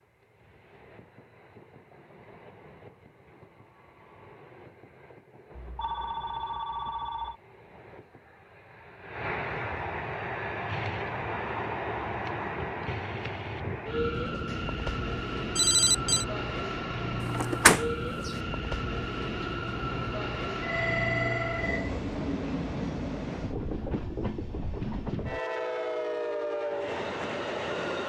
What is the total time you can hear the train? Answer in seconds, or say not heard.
28 s.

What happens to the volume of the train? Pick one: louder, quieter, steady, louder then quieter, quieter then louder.
louder.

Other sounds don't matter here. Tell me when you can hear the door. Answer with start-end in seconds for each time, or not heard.
17.2-18.3.